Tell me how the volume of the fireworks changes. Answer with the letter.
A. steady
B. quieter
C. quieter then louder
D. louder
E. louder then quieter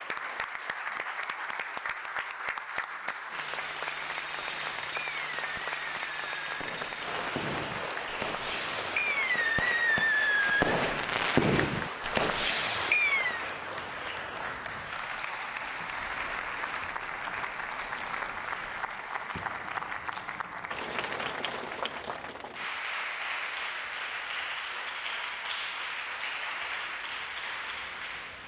D.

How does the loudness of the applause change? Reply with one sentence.
The loudness of the applause stays about the same.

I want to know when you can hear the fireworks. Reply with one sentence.
The fireworks can be heard from 4.3 to 13.4 s.